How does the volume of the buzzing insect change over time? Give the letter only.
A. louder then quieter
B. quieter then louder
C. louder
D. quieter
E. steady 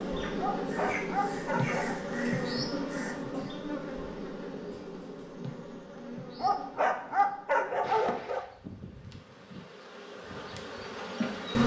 D.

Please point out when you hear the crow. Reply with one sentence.
You can hear the crow from 0.0 to 3.5 s.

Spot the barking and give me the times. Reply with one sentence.
The barking can be heard from 0.3 to 1.9 s and from 6.3 to 8.4 s.